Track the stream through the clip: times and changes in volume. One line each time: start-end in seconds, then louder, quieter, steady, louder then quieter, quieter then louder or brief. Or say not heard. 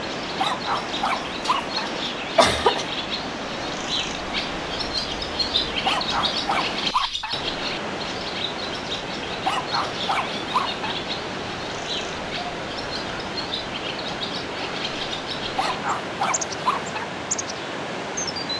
0.0-18.5 steady.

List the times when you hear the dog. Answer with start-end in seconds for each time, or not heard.
0.3-1.9, 5.8-7.3, 9.4-10.7, 15.6-17.1.